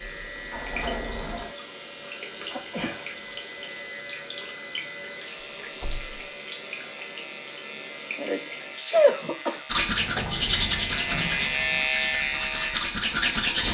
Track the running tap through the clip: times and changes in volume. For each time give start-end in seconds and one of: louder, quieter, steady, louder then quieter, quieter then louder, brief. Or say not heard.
0.0-8.8 steady.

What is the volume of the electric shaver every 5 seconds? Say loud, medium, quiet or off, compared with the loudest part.
quiet, quiet, loud.